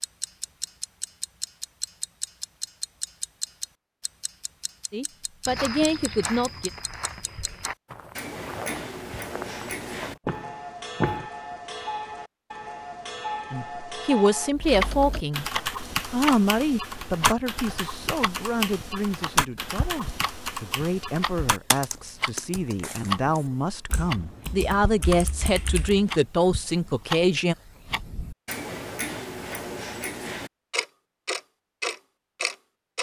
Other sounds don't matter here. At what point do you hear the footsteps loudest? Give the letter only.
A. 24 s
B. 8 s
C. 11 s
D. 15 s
C.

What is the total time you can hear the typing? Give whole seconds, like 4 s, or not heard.
12 s.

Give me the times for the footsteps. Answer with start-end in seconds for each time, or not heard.
5.5-11.3.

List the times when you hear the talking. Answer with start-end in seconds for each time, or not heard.
4.9-6.7, 13.5-15.5, 16.1-27.6.